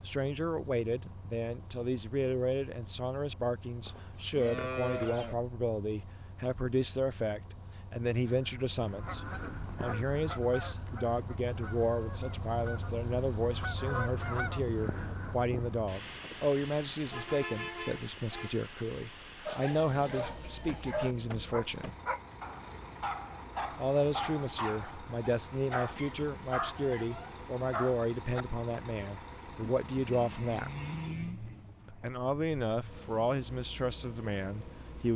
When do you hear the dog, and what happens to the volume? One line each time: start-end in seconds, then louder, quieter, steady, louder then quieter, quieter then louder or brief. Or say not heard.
19.4-28.4 steady.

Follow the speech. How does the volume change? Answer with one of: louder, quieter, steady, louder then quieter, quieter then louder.
steady.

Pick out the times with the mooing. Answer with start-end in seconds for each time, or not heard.
3.9-5.3, 29.6-31.4.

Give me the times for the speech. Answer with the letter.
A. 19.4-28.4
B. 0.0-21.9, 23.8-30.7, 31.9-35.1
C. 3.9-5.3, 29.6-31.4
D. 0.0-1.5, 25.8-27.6
B.